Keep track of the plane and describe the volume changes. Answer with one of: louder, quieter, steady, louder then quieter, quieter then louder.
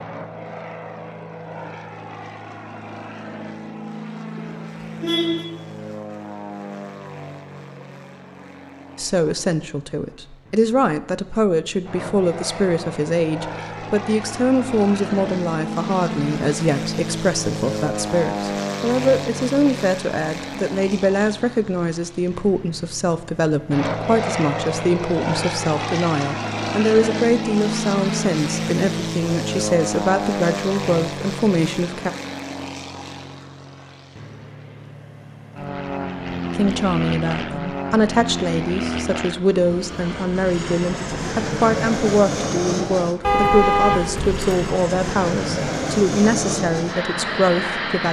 louder.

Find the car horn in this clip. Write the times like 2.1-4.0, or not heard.
4.3-5.5, 43.2-44.8.